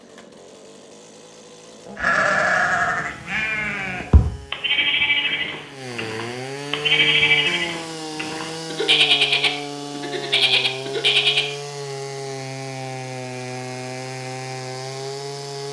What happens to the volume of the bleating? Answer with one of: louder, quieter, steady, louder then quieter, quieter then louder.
steady.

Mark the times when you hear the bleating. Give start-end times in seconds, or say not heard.
1.9-11.4.